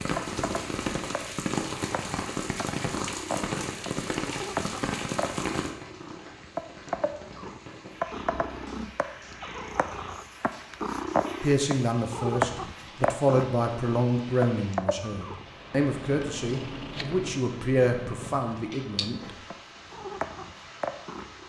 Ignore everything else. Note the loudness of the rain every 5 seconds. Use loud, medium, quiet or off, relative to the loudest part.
loud, medium, quiet, quiet, quiet.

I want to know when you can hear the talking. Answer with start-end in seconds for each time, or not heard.
11.4-19.3.